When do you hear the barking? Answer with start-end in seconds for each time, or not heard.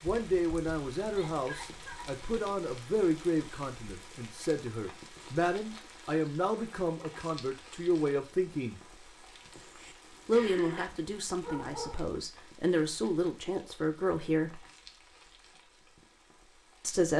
11.4-12.2.